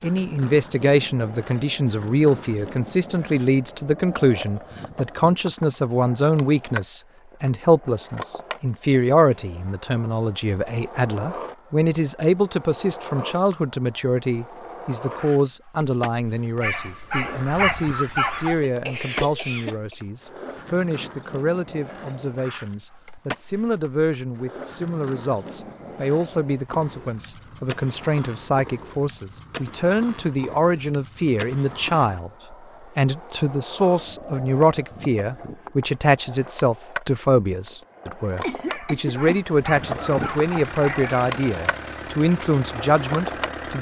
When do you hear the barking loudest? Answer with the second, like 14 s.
18 s.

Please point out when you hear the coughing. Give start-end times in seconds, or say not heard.
18.2-19.9, 38.4-39.4.